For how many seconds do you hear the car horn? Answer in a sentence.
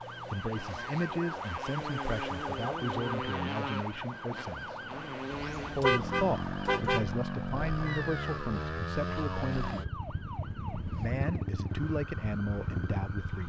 The car horn can be heard for 2 seconds in total.